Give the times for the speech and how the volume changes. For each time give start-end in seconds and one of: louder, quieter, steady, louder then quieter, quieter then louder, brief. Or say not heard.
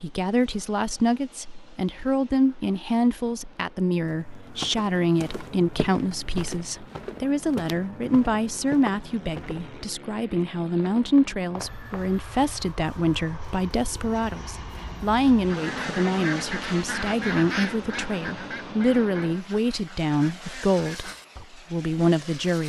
0.0-22.6 steady.